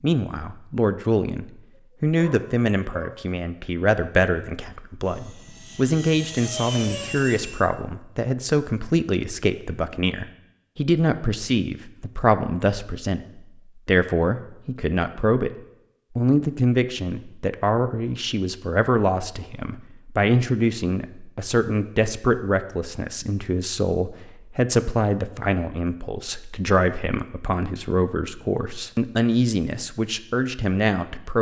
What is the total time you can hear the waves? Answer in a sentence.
The waves can't be heard in this clip.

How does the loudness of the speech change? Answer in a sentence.
The loudness of the speech stays about the same.